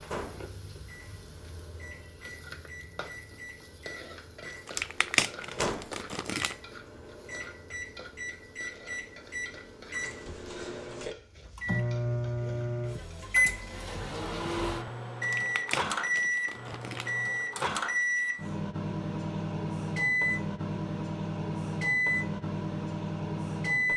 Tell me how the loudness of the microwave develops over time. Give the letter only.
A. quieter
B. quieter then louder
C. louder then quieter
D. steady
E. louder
E.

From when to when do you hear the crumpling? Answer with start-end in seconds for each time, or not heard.
4.7-6.5, 15.2-17.1.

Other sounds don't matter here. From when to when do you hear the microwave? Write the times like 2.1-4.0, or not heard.
0.0-23.9.